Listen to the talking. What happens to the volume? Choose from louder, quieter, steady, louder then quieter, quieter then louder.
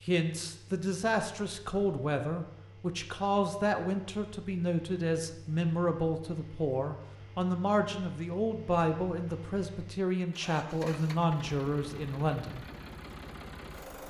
steady.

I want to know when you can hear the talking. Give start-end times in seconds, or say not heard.
0.0-12.7.